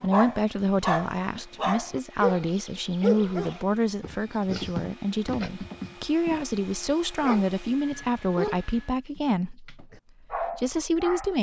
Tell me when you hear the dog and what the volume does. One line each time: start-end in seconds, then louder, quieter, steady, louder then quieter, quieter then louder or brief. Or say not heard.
0.0-11.3 quieter.